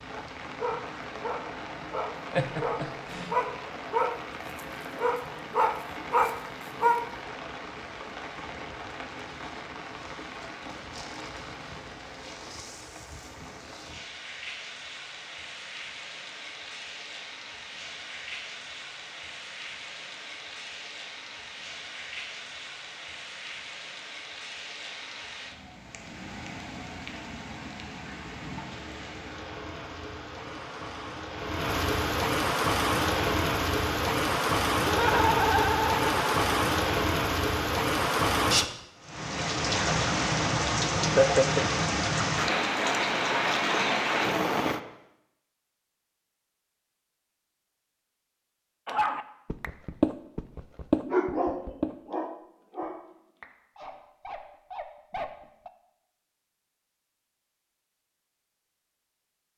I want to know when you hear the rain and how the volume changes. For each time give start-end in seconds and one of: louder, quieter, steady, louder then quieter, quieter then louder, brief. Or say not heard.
0.0-44.8 louder.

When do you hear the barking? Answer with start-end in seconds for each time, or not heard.
0.1-7.2, 48.9-55.7.